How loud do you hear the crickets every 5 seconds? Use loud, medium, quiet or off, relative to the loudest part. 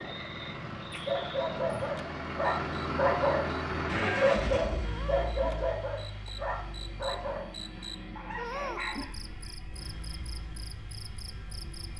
loud, loud, medium.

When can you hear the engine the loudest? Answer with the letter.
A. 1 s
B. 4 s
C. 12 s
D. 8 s
B.